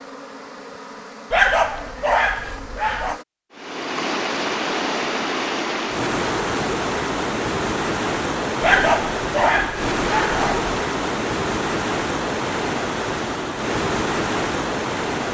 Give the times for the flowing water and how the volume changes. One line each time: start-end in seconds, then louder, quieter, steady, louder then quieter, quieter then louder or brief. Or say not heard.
3.5-15.3 steady.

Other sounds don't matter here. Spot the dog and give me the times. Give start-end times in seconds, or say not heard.
1.3-3.2, 8.6-10.8.